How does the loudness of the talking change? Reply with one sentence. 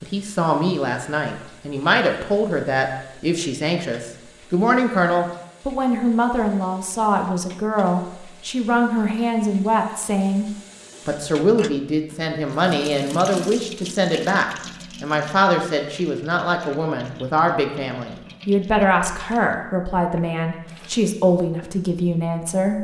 The loudness of the talking stays about the same.